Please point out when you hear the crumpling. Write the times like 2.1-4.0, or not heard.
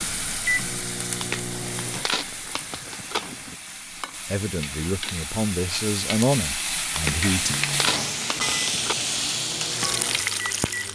1.1-3.5, 6.9-8.9.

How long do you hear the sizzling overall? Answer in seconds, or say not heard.
11 s.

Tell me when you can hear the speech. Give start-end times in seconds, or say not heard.
4.2-7.5.